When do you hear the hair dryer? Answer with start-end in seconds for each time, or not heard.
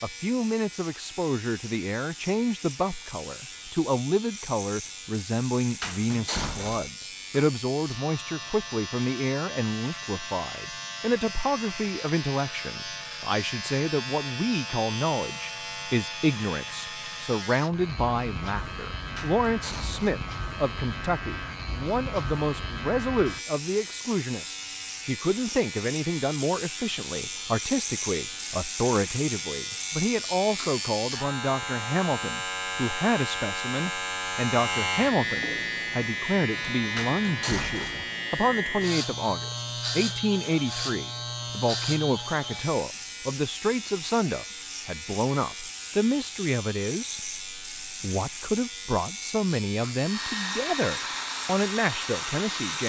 50.0-52.8.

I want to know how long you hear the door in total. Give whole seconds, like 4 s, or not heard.
3 s.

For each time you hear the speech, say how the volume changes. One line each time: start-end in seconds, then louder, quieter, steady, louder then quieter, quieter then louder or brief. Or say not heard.
0.0-52.8 steady.